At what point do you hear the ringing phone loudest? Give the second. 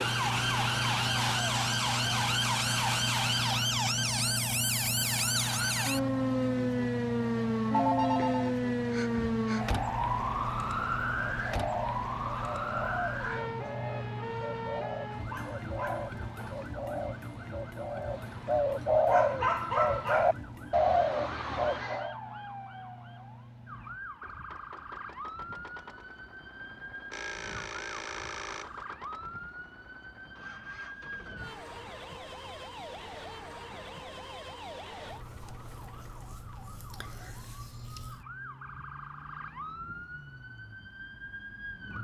8 s.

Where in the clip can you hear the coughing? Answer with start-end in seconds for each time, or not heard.
not heard.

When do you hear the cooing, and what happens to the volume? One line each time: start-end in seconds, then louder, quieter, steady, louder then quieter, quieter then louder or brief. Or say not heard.
11.3-22.1 louder.